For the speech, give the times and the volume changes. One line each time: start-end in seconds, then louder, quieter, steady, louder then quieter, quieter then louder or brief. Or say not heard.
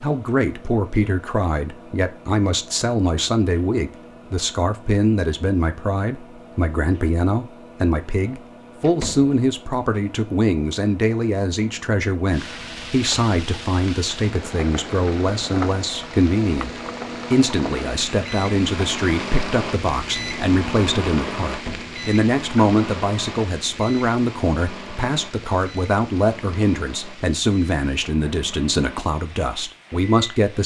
0.0-30.6 steady.